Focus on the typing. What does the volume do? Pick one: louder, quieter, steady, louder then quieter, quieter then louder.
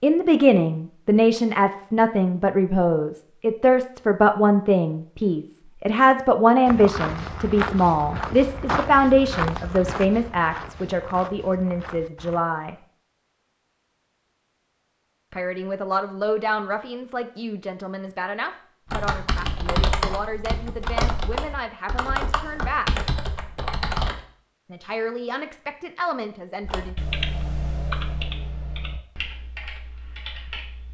quieter.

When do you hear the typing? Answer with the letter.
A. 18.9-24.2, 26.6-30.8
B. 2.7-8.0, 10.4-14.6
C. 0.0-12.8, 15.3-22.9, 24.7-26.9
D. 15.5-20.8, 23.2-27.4
A.